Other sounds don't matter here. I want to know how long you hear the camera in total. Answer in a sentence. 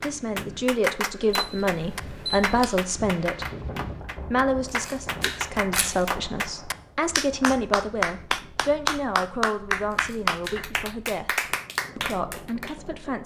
The camera can be heard for 3 seconds in total.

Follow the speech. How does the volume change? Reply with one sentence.
The loudness of the speech goes down.